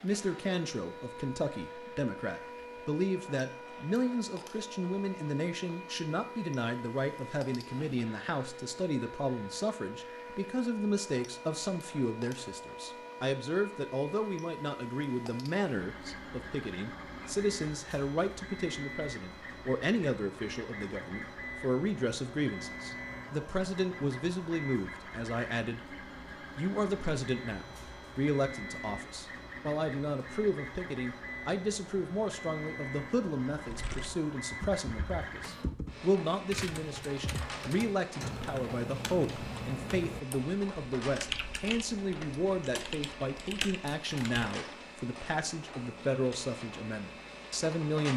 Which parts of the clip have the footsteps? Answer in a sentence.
You can't hear the footsteps here.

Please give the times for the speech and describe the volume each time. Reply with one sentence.
You can hear the speech from 0.0 to 48.1 s, at a steady volume.